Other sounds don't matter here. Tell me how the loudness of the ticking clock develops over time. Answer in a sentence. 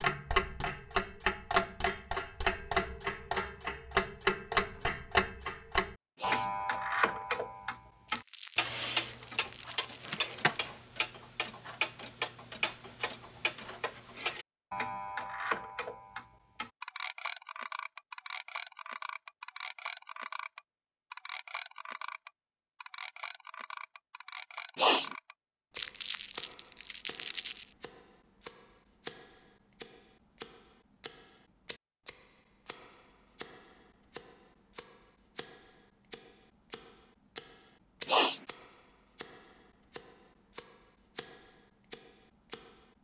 The volume of the ticking clock goes down.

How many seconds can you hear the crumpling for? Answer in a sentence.
The crumpling can be heard for 4 seconds in total.